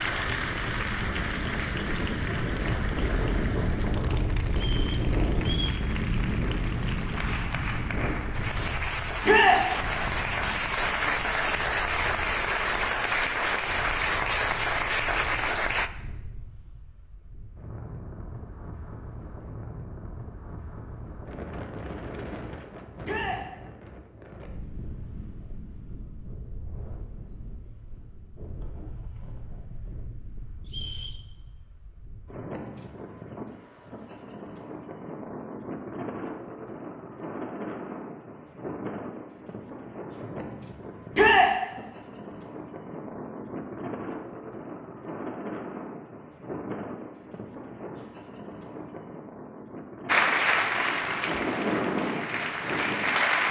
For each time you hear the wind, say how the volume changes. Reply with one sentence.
The wind can be heard from 0.0 to 53.4 s, getting quieter then louder.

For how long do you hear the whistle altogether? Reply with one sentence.
You can hear the whistle for 2 seconds altogether.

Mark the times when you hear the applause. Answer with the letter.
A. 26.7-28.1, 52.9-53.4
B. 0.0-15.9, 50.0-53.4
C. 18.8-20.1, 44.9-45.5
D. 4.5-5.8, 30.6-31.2
B.